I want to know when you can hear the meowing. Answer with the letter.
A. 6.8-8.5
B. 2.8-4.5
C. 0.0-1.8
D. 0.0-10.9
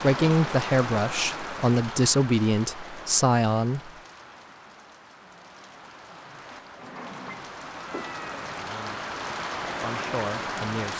A.